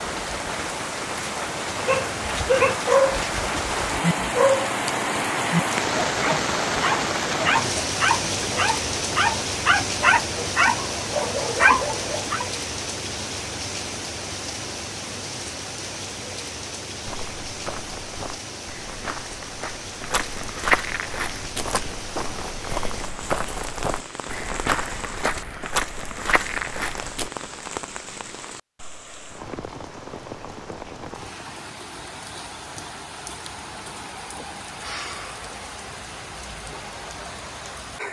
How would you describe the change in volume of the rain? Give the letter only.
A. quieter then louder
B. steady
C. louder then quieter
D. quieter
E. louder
D.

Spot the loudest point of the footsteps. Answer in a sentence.
The loudest moment of the footsteps is at 21 seconds.